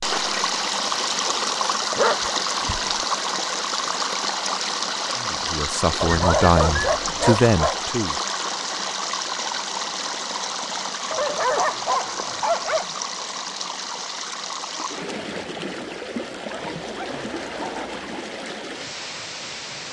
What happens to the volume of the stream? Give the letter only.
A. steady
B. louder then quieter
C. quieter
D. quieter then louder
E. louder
C.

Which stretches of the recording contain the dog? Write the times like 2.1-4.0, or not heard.
1.9-3.0, 6.0-7.8, 11.1-12.9, 16.4-18.2.